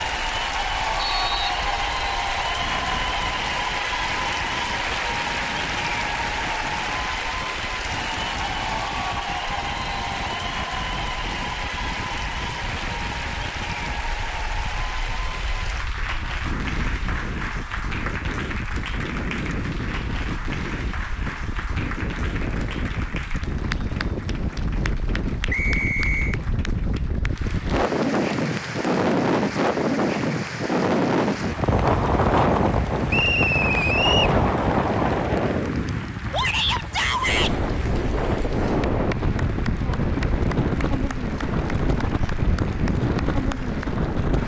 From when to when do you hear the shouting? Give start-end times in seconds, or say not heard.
36.3-37.5.